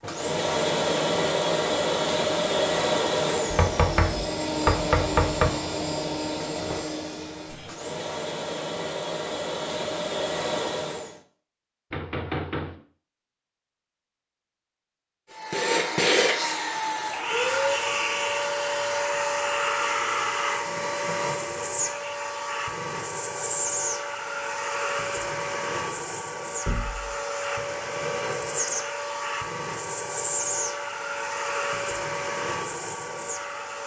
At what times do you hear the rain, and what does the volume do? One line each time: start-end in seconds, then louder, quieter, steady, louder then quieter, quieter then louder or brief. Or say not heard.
not heard.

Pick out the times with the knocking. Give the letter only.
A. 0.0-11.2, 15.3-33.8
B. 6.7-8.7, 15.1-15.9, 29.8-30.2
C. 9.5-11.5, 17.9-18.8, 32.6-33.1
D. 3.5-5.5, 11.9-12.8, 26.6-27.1
D.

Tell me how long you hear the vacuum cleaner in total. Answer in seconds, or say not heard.
30 s.